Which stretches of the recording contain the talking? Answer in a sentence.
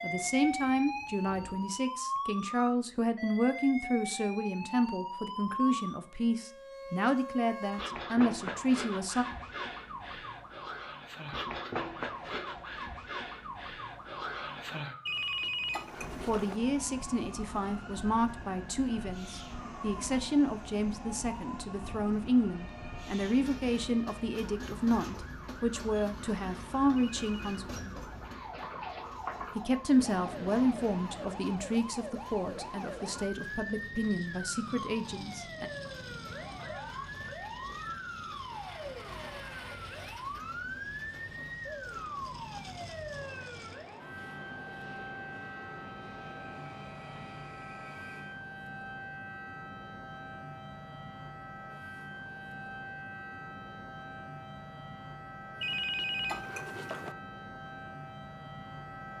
The talking can be heard from 0.0 to 9.2 s, from 16.2 to 27.9 s and from 29.6 to 35.7 s.